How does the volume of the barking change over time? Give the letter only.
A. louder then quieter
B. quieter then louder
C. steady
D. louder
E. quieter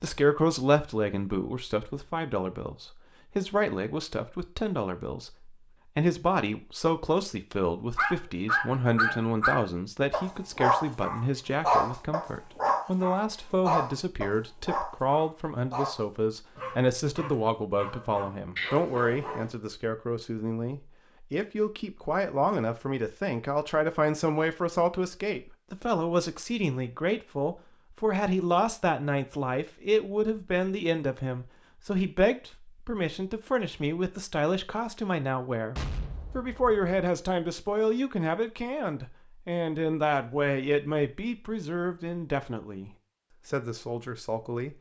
E.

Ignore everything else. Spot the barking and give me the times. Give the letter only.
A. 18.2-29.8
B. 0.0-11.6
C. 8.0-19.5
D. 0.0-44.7
C.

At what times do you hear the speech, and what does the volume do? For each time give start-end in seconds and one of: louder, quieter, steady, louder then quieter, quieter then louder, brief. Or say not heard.
0.0-44.7 steady.